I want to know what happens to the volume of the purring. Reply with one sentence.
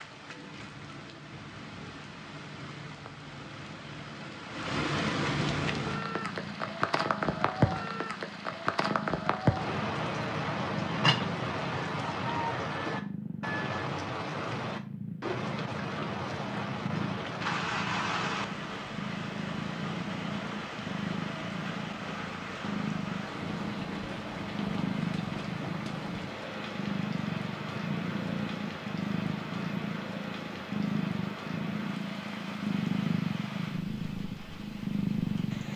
The volume of the purring goes up.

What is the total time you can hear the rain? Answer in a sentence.
The rain can be heard for 36 seconds in total.